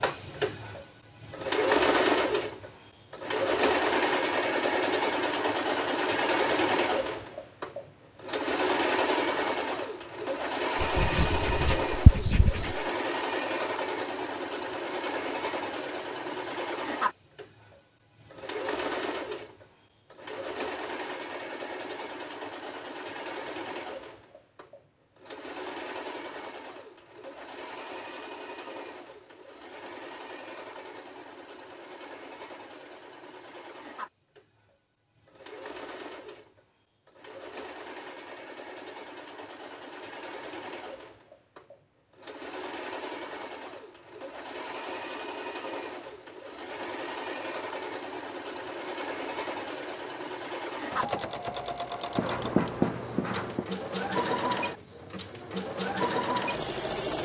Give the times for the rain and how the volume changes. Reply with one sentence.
The rain can't be heard in this clip.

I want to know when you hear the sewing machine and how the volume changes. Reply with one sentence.
The sewing machine can be heard from 0.0 to 57.2 s, getting quieter then louder.